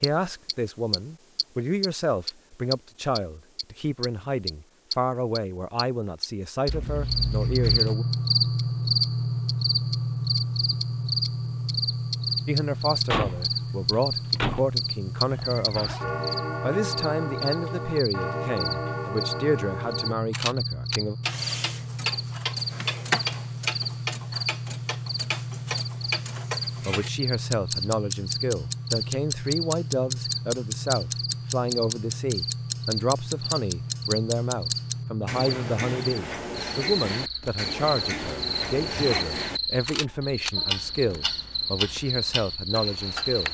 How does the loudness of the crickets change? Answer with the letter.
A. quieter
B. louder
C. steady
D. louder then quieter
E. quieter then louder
A.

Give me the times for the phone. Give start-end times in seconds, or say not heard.
not heard.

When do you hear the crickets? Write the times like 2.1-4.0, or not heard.
6.9-43.4.